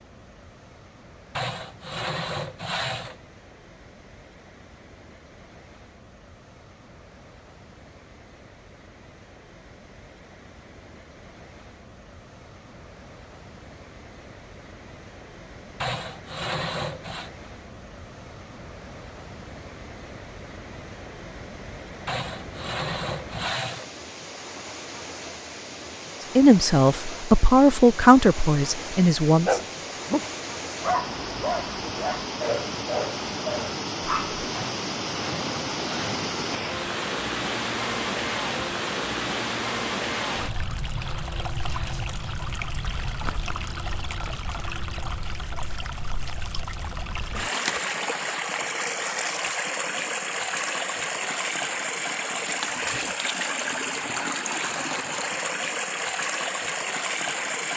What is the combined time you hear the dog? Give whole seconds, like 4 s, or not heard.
5 s.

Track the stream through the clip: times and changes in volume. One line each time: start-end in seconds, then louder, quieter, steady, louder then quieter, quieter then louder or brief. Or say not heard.
0.0-57.7 louder.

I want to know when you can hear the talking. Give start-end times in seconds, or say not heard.
26.4-29.6.